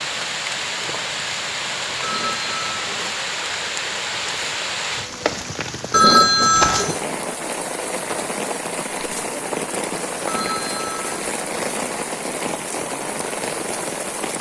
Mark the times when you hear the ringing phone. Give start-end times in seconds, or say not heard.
2.0-3.0, 5.9-7.0, 10.2-11.2.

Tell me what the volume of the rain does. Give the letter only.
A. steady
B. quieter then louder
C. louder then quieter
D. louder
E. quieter
A.